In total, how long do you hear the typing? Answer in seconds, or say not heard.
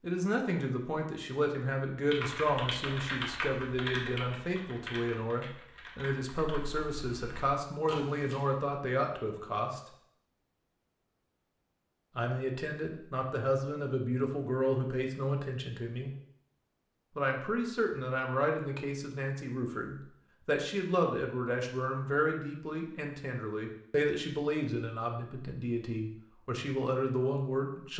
6 s.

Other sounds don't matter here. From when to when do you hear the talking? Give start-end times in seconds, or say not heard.
0.0-9.8, 12.2-16.1, 17.1-27.9.